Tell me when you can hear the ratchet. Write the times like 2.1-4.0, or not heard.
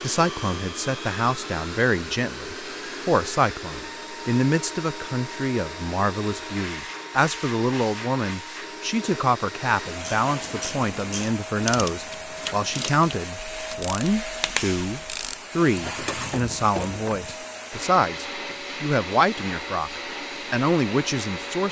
9.9-17.4.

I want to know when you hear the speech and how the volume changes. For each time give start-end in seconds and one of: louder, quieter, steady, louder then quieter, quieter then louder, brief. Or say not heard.
0.0-21.6 steady.